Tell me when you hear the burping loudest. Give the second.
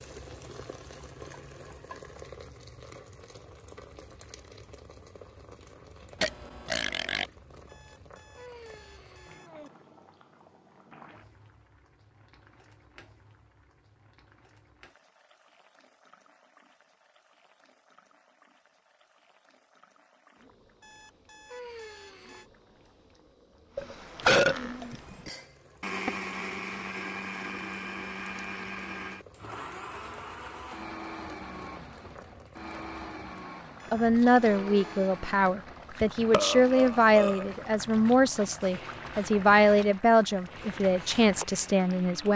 24 s.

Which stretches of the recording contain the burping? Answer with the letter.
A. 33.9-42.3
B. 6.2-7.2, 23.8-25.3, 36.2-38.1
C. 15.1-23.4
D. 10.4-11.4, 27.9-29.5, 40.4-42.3
B.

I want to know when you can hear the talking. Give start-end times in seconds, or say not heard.
33.9-42.3.